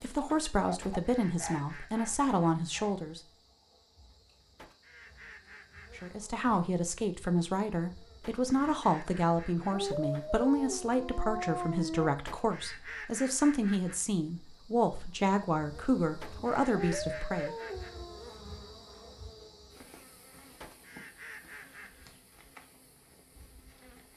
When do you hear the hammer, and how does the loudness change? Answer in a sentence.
The hammer can't be heard in this clip.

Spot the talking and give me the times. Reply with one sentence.
You can hear the talking from 0.0 to 3.2 s and from 6.0 to 17.6 s.